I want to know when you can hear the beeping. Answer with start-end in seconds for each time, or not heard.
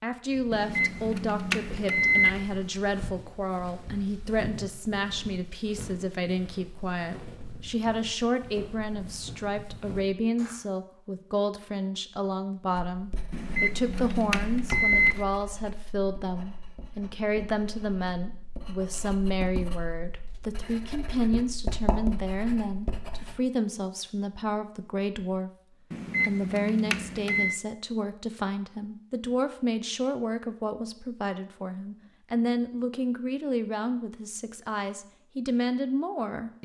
0.5-2.4, 13.3-15.2, 25.9-27.6.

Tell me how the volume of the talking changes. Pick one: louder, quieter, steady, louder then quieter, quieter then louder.
steady.